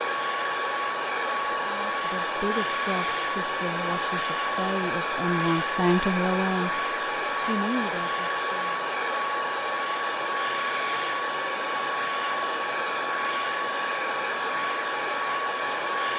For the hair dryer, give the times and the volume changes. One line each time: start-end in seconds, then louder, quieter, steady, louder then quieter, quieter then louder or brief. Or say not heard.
0.0-16.1 steady.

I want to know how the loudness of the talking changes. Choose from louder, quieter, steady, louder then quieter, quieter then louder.
louder then quieter.